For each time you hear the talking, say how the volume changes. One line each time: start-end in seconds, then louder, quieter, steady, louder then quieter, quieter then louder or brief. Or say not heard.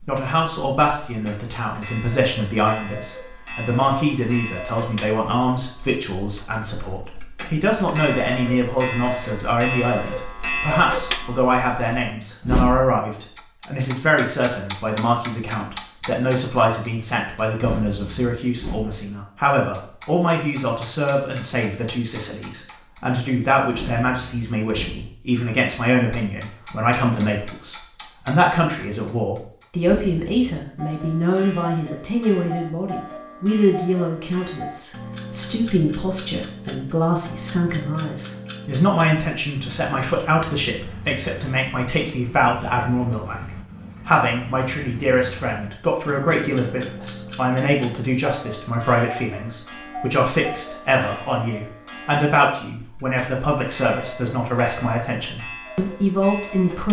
0.1-56.8 steady.